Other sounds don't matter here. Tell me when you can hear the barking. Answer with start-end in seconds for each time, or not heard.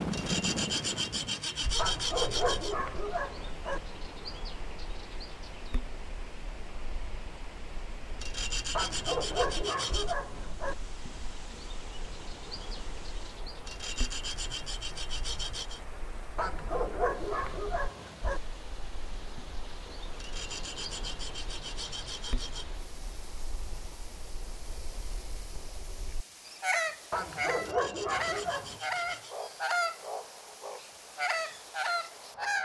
1.8-3.8, 8.8-10.8, 16.4-18.4, 27.1-28.8.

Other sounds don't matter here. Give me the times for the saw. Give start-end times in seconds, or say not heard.
0.1-2.8, 8.2-10.2, 13.7-15.8, 20.1-22.6, 27.6-29.4.